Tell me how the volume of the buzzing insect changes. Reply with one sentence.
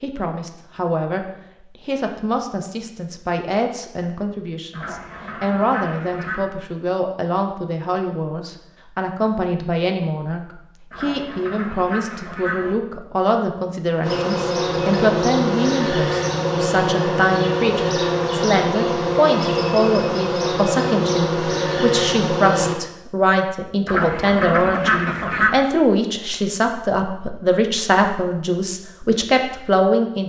The volume of the buzzing insect stays about the same.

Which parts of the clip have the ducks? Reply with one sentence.
You can hear the ducks from 4.7 to 6.5 s, from 10.9 to 12.8 s and from 23.9 to 25.6 s.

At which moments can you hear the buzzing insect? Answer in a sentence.
You can hear the buzzing insect from 14.0 to 22.8 s.